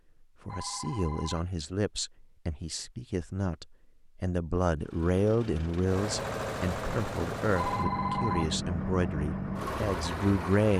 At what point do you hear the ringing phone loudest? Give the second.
8 s.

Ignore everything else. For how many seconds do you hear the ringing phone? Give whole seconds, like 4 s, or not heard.
2 s.